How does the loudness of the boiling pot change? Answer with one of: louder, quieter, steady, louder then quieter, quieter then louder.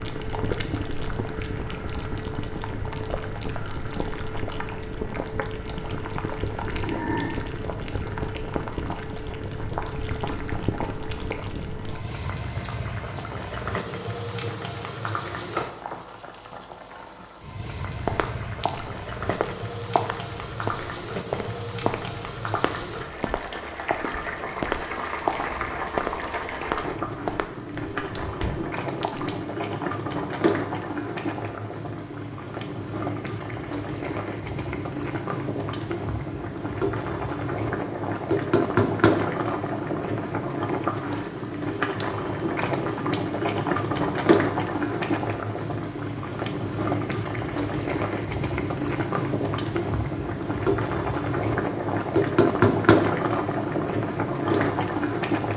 louder.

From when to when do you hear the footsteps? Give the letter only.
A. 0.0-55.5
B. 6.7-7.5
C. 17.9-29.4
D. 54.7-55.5
C.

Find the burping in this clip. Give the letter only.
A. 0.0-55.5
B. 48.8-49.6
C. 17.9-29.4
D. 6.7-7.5
D.